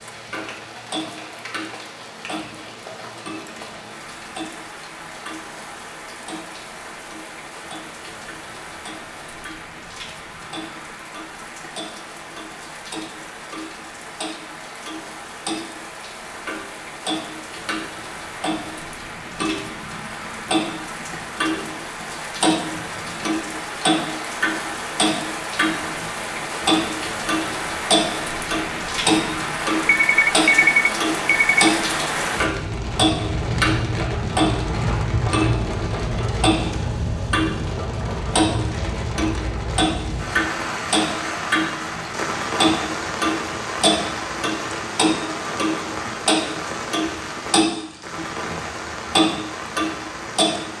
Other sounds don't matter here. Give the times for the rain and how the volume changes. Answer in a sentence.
The rain can be heard from 0.0 to 50.7 s, getting louder.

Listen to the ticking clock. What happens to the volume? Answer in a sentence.
The loudness of the ticking clock goes up.